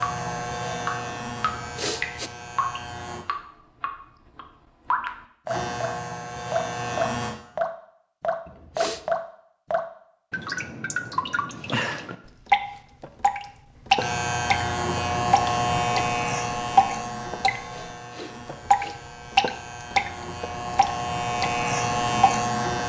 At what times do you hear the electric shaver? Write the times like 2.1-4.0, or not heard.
0.0-3.2, 5.5-7.3, 13.9-22.8.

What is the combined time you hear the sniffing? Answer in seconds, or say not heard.
3 s.